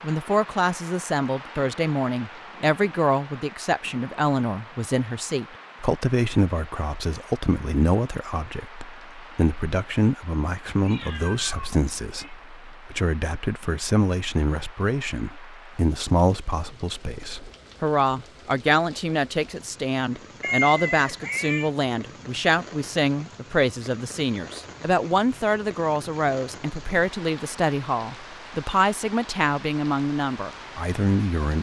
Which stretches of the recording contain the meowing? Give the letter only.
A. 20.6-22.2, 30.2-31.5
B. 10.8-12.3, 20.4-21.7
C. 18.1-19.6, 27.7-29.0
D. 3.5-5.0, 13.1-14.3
B.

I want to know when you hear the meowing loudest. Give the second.
21 s.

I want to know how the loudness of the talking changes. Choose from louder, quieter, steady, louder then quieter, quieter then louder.
steady.